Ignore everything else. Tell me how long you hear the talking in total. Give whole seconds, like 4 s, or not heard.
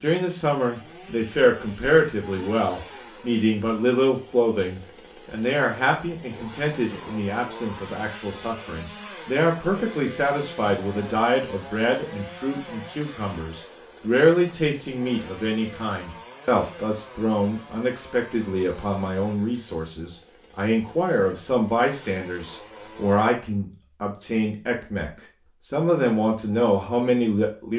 28 s.